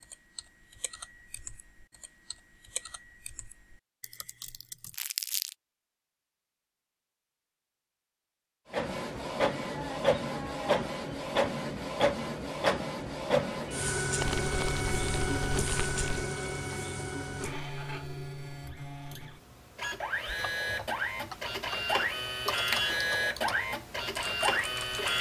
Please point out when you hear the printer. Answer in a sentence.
The printer can be heard from 8.7 to 25.1 s.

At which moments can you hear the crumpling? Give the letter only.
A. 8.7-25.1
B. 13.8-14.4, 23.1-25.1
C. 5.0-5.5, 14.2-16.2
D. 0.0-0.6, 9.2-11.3
C.